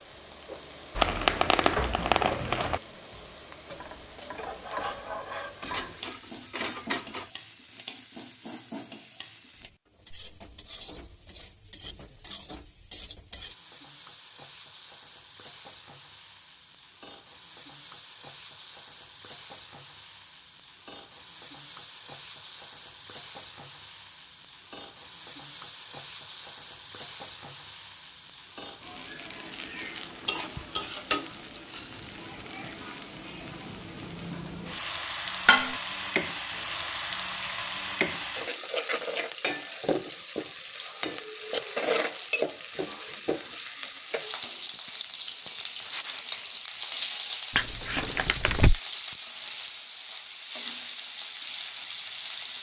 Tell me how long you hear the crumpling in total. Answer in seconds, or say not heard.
3 s.